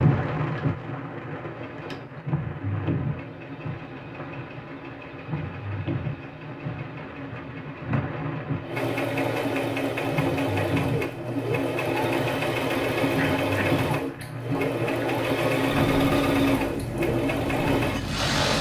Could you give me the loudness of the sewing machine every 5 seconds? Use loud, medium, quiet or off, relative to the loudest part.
quiet, medium, loud, loud.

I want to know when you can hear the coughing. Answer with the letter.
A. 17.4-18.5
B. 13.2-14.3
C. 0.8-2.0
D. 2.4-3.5
B.